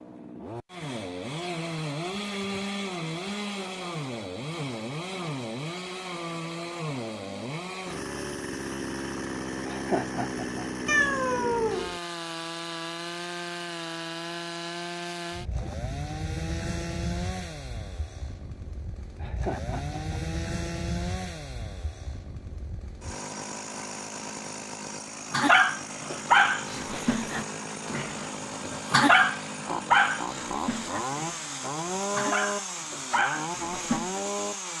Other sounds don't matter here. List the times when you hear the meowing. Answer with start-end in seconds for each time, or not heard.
10.8-12.0.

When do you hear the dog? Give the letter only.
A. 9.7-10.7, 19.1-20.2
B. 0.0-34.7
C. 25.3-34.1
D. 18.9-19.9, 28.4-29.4
C.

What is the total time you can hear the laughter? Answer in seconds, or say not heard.
2 s.